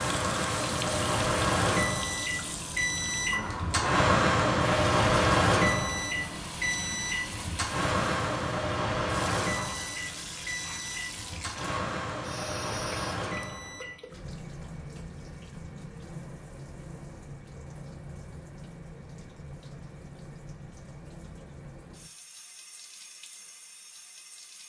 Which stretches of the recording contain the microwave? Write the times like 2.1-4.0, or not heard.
0.0-14.0.